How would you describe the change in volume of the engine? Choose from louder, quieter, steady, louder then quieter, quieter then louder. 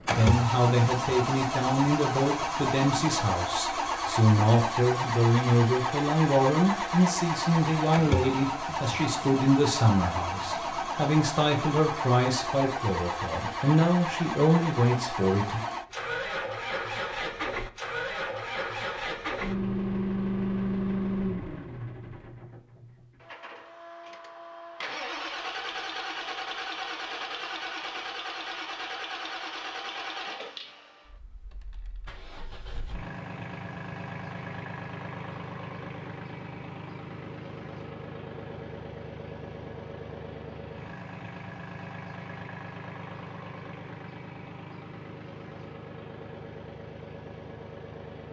quieter.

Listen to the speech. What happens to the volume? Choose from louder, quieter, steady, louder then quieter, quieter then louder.
steady.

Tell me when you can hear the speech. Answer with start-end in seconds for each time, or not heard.
0.1-15.7.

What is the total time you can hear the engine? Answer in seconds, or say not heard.
48 s.